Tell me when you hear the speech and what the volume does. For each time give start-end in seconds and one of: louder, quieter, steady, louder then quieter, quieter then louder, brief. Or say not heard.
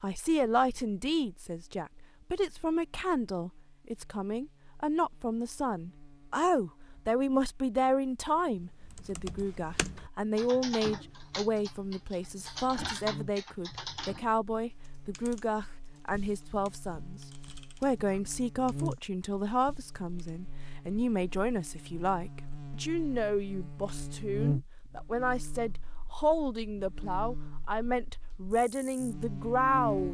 0.0-17.2 steady
17.8-30.0 steady.